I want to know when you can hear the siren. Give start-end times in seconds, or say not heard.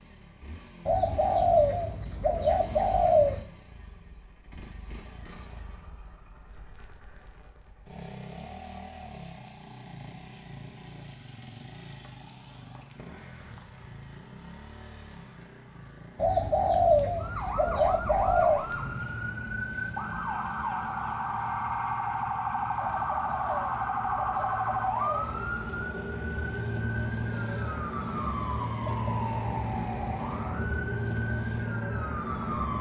17.1-32.7.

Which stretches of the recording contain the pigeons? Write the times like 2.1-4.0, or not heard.
0.8-3.4, 16.1-18.6, 23.0-25.3.